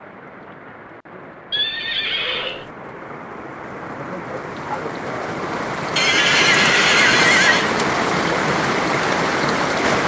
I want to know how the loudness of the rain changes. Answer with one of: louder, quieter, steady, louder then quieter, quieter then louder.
louder.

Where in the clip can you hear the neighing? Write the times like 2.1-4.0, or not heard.
1.5-2.7, 6.0-7.7.